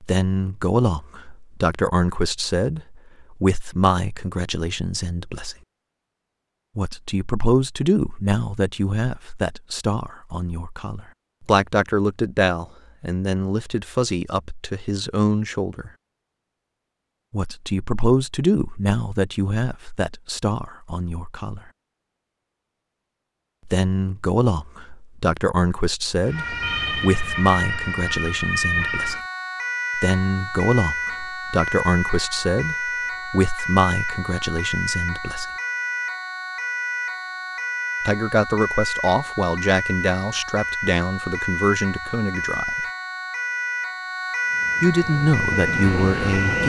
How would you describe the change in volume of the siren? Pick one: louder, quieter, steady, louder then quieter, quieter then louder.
steady.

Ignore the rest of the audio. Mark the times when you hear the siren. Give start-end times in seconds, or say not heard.
26.2-46.6.